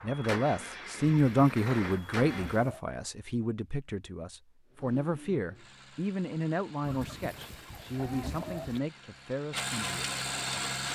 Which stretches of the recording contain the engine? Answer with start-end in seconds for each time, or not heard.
0.0-2.6, 4.7-10.9.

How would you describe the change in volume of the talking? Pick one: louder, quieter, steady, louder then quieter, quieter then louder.
quieter.